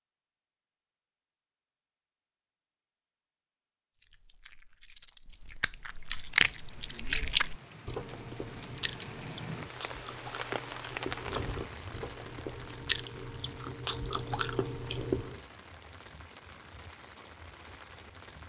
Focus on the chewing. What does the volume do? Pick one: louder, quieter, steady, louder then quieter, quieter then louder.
quieter then louder.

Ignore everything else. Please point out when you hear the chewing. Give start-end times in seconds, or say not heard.
4.0-15.4.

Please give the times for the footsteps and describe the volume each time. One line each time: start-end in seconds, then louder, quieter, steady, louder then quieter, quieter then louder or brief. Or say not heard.
not heard.